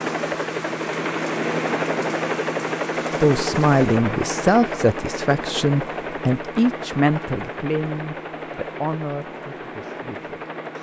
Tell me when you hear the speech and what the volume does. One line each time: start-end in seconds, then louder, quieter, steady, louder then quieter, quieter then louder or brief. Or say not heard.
3.1-10.4 quieter.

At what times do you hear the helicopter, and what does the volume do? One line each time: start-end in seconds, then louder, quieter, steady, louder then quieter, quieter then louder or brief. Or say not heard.
0.0-10.7 quieter.